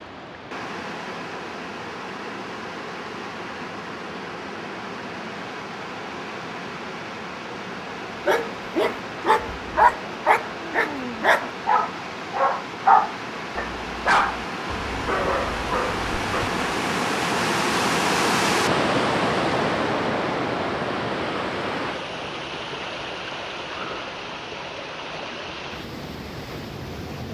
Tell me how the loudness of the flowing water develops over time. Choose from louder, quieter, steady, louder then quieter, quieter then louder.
louder then quieter.